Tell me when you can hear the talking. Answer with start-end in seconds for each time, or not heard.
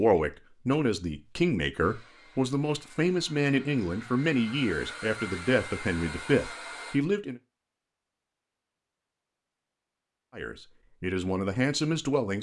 0.0-7.4, 10.3-12.3.